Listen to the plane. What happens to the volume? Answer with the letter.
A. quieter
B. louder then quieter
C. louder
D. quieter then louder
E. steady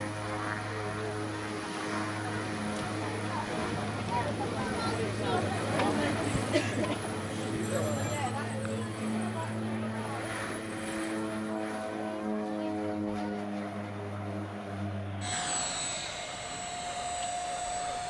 E.